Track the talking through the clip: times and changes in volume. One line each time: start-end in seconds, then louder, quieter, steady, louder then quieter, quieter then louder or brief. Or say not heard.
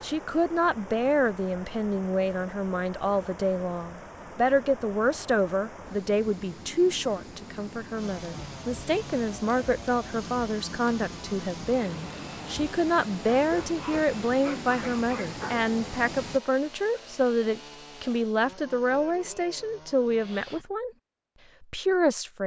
0.0-20.9 steady
21.6-22.4 brief.